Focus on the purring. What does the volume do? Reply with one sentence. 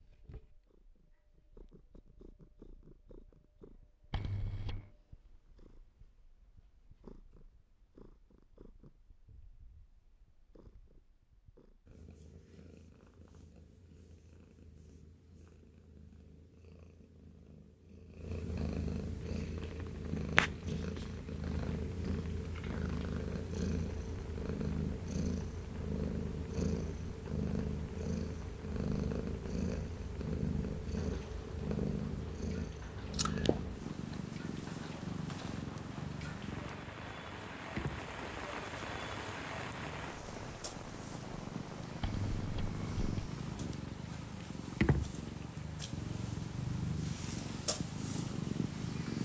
The volume of the purring goes up.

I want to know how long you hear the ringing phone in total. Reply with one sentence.
The ringing phone can be heard for 2 seconds in total.